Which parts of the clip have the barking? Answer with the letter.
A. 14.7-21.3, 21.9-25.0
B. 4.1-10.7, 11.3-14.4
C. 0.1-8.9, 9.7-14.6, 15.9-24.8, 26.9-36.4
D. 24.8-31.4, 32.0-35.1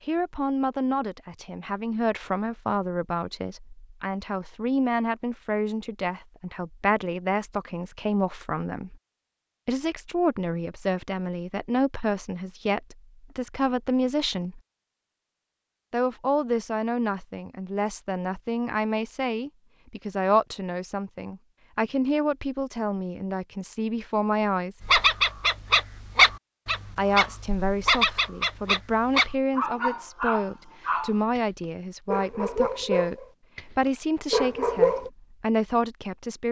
D.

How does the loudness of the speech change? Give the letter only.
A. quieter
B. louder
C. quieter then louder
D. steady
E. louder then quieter
D.